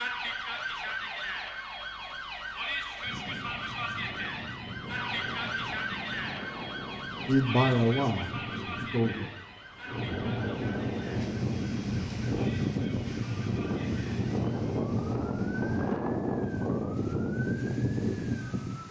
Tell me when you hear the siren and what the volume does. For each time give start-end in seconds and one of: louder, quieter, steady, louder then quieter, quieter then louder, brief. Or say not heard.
0.0-18.8 quieter.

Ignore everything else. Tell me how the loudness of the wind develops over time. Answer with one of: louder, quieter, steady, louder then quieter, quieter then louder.
louder.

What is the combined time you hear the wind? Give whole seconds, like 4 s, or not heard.
16 s.